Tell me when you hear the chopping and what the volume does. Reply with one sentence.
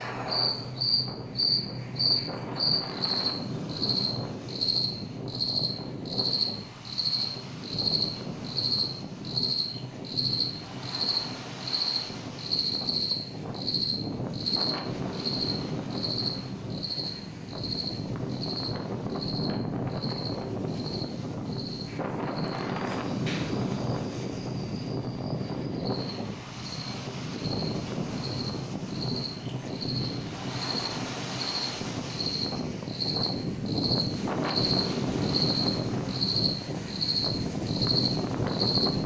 The chopping can't be heard in this clip.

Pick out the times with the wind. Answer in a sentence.
The wind can be heard from 0.0 to 39.0 s.